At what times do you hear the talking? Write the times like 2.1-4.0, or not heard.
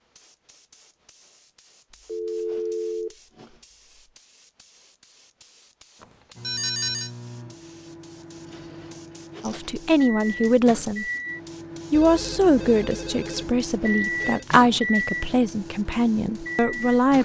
9.4-11.1, 11.9-17.2.